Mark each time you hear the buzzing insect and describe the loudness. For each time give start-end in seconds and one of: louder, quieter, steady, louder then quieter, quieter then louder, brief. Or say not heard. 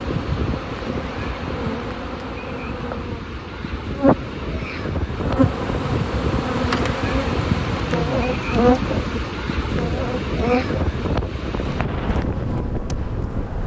0.0-13.6 louder then quieter.